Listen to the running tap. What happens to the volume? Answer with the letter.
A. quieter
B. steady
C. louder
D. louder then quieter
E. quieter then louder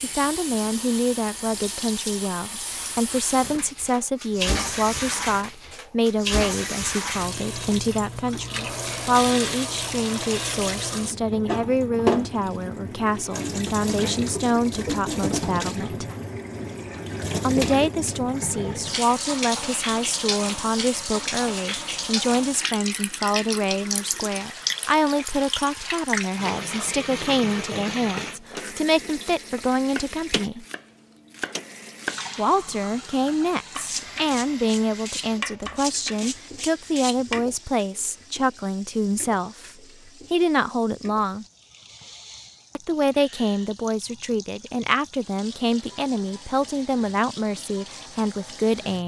A.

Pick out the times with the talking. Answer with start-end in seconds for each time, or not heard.
0.0-16.1, 17.4-30.6, 32.4-39.7, 40.3-41.5, 42.8-49.0.